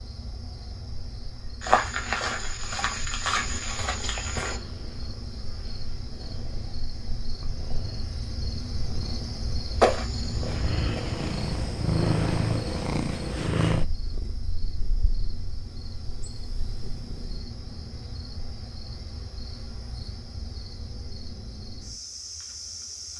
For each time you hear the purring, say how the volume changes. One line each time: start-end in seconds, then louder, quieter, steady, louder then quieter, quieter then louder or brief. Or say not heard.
4.4-17.4 louder then quieter.